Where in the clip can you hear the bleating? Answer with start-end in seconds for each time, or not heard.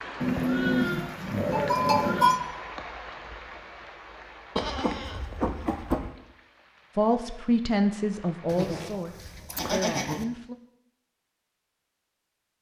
0.2-2.4, 4.5-6.1, 8.4-10.2.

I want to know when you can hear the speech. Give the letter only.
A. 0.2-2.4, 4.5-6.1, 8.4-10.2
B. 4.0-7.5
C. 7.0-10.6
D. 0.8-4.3
C.